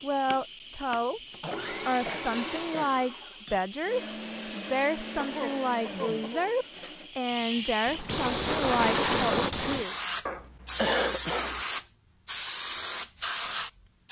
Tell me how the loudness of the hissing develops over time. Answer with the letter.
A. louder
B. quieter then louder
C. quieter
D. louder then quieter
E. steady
A.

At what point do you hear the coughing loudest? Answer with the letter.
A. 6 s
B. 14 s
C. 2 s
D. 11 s
D.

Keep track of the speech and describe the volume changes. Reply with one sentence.
The volume of the speech stays about the same.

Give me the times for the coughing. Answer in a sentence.
The coughing can be heard from 1.4 to 3.0 s, from 5.2 to 6.5 s and from 10.2 to 11.7 s.